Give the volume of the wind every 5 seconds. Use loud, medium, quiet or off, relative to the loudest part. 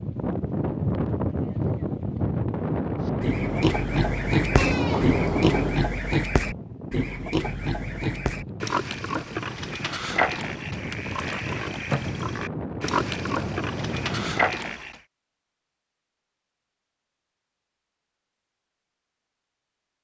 loud, medium, medium, off.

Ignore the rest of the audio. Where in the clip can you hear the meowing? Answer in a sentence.
You can hear the meowing from 4.5 to 5.8 s.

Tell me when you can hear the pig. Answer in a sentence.
The pig can be heard from 3.0 to 15.0 s.